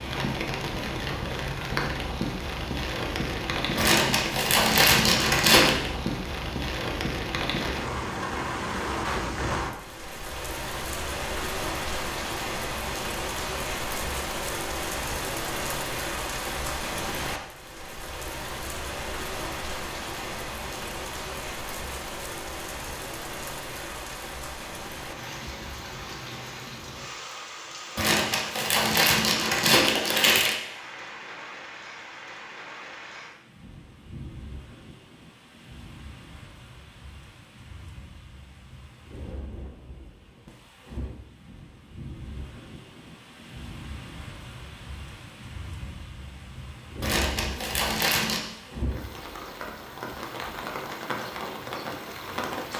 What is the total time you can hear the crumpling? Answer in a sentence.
The crumpling can be heard for 6 seconds in total.